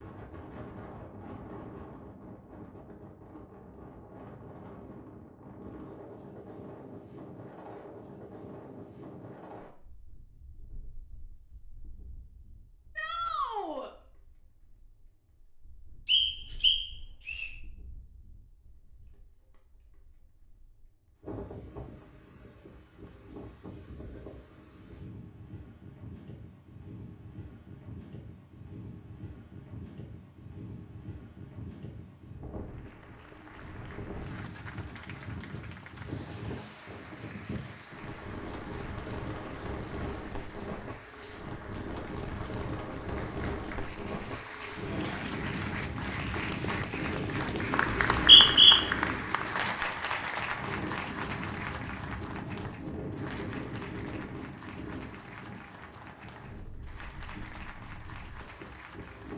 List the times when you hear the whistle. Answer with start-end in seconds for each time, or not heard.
16.1-17.5, 48.1-48.8.